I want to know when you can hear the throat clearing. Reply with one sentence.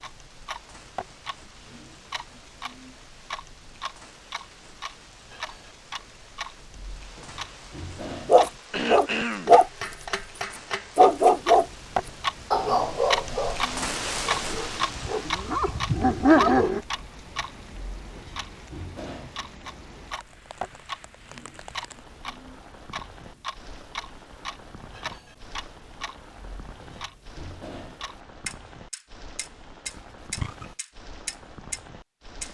The throat clearing can be heard from 8.7 to 9.6 s.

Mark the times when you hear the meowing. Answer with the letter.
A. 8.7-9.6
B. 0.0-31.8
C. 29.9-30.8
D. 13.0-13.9
C.